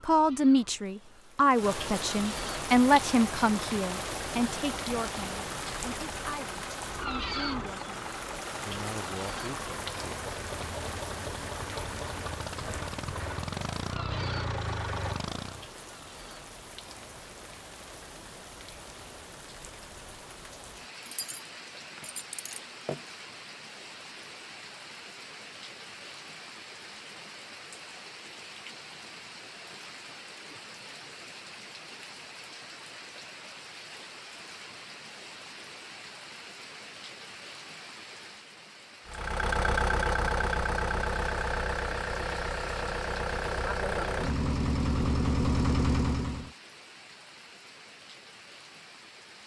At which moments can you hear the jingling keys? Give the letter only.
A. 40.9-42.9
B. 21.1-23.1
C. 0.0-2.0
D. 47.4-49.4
B.